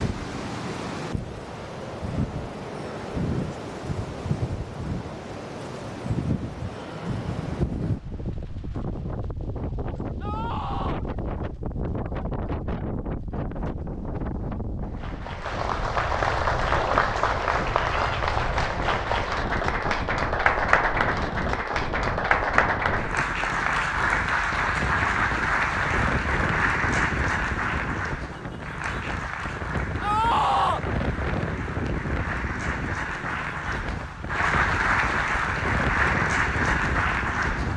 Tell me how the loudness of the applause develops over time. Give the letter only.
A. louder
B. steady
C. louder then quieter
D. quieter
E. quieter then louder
E.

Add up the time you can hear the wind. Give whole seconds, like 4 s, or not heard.
38 s.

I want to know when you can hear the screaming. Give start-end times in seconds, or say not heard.
10.2-11.0, 17.8-18.2, 30.0-30.9.